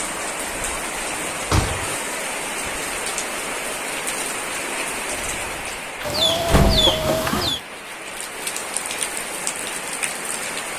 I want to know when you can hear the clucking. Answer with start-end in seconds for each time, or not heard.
6.0-7.6.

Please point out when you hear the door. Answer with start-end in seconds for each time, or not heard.
1.1-1.9, 6.0-7.5.